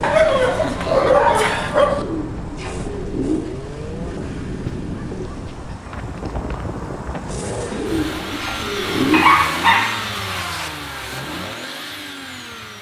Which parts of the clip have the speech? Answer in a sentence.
The speech can't be heard in this clip.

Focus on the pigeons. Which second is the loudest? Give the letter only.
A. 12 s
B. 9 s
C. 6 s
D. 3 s
B.